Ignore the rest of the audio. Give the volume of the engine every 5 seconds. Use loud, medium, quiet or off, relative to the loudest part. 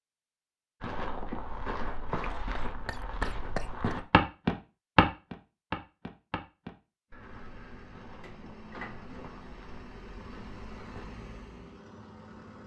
off, loud, loud.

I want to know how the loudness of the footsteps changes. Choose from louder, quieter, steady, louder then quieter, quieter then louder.
louder then quieter.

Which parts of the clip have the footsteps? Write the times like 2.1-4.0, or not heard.
0.8-11.1.